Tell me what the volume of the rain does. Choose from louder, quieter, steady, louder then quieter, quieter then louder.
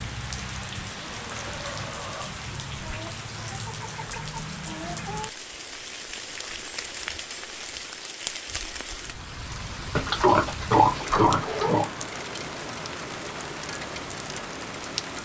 steady.